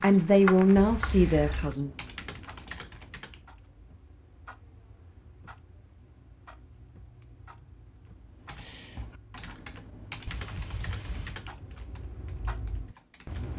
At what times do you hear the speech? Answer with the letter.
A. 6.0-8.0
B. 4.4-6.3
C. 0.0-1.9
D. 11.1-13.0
C.